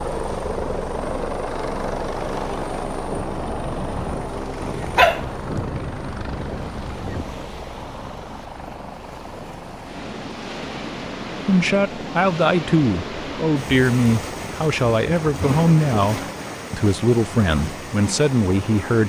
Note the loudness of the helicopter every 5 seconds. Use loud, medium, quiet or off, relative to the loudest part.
loud, medium, medium, off.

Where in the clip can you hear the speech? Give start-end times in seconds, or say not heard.
11.3-19.0.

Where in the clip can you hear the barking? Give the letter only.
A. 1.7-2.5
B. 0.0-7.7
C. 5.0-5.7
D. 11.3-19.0
C.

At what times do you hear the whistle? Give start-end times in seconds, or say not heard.
not heard.